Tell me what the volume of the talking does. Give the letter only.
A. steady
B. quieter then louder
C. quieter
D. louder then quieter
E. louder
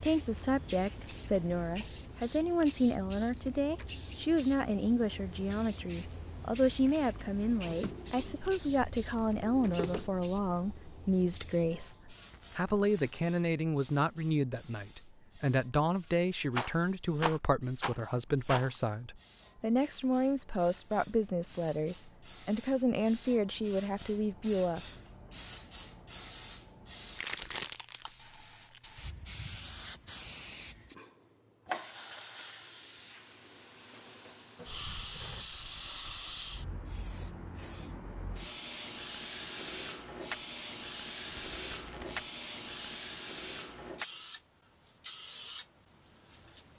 A.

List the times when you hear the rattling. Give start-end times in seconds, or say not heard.
12.2-13.2, 16.5-18.7, 41.2-42.2.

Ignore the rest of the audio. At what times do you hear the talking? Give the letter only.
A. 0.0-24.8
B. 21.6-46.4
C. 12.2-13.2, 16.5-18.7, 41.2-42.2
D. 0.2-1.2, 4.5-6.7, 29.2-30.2
A.